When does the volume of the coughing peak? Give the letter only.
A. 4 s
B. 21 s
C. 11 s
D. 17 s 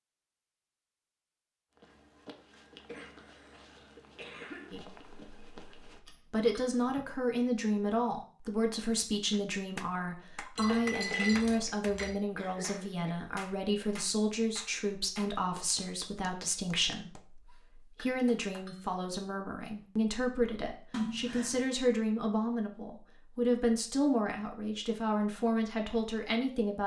B.